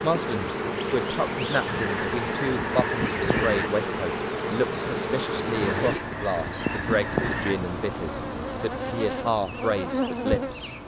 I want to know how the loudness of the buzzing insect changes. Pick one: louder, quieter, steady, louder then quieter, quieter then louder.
steady.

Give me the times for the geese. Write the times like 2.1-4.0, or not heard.
1.6-3.7, 5.6-7.5.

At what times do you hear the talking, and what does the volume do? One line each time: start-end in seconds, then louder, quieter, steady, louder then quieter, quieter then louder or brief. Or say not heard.
0.0-10.7 steady.